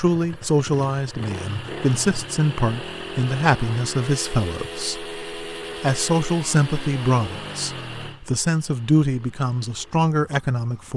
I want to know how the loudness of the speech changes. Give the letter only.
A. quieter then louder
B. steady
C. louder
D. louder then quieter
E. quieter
B.